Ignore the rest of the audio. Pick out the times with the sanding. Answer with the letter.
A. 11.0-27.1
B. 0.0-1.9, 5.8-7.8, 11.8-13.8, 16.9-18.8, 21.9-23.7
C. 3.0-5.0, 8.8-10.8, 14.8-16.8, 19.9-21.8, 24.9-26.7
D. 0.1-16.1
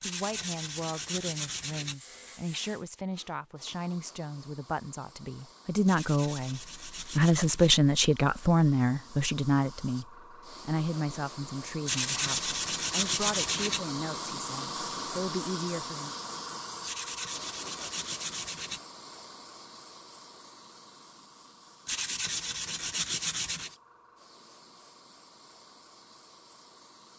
B.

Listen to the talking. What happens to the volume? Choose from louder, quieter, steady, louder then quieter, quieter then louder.
louder then quieter.